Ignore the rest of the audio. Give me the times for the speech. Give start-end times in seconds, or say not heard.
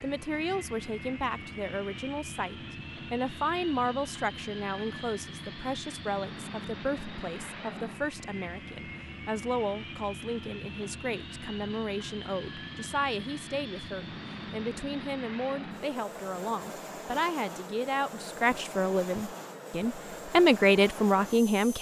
0.0-21.7.